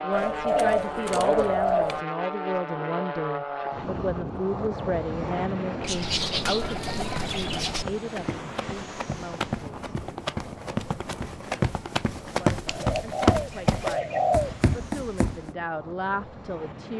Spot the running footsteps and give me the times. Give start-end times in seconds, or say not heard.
7.7-15.6.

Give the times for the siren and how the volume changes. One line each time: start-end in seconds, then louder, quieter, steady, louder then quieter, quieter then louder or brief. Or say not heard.
not heard.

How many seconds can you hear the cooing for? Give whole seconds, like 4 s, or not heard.
6 s.